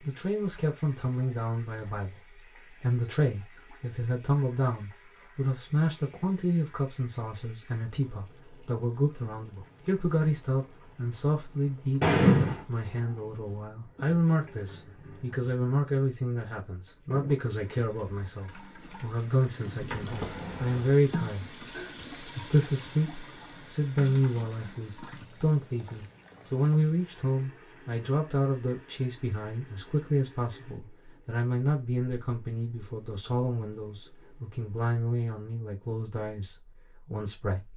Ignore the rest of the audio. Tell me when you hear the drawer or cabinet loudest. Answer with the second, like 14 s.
12 s.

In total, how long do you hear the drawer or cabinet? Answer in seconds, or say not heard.
2 s.